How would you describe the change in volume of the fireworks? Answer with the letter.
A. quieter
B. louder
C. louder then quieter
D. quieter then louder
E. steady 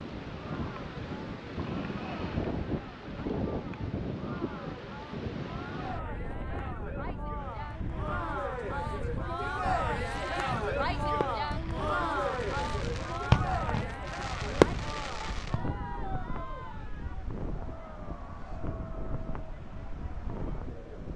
D.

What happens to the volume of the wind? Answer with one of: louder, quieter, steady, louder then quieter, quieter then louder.
quieter.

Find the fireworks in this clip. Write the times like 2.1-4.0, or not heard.
10.1-15.6.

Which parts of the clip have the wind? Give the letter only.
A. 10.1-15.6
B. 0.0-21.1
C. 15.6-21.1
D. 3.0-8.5
B.